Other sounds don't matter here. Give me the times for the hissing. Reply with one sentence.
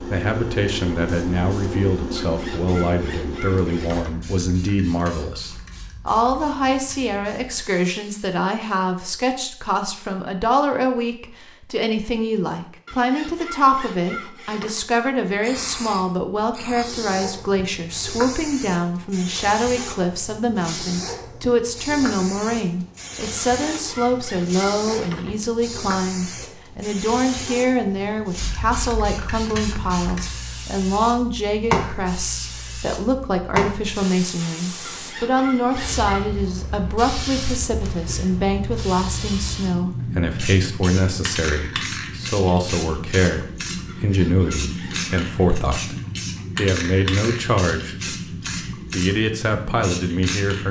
You can hear the hissing from 0.0 to 8.4 s and from 15.4 to 50.6 s.